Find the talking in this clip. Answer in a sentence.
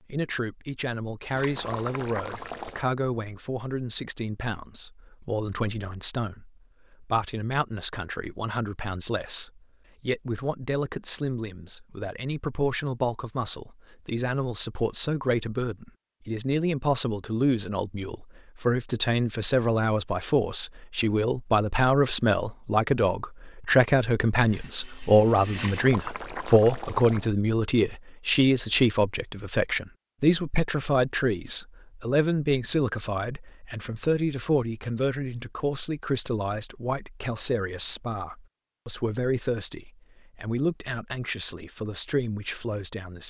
The talking can be heard from 0.1 to 43.2 s.